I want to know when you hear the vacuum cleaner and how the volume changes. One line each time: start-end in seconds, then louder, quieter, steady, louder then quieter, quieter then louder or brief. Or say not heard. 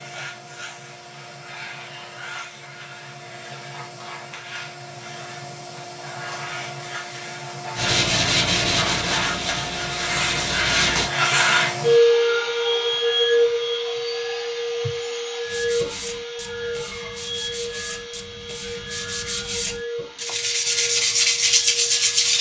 0.0-22.3 louder then quieter.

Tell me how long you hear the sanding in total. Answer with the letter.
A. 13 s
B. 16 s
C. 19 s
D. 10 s
D.